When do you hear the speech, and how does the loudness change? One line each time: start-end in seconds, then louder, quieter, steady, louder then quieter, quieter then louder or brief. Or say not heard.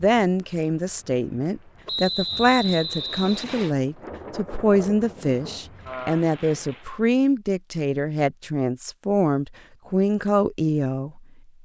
0.0-11.6 steady.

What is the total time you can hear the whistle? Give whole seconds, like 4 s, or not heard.
2 s.